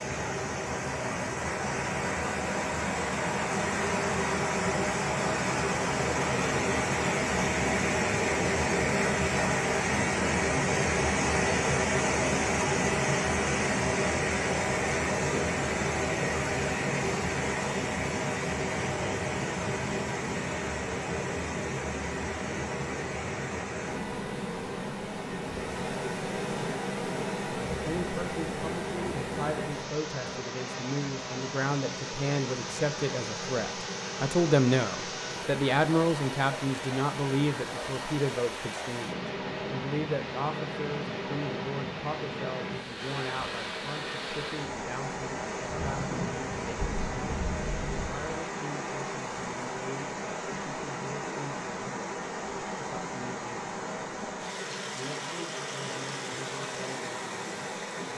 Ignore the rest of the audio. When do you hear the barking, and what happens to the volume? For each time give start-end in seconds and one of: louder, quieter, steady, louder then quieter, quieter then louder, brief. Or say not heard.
not heard.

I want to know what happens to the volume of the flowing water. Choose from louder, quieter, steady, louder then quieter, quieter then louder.
quieter.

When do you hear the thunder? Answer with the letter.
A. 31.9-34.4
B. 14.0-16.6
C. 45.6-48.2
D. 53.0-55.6
C.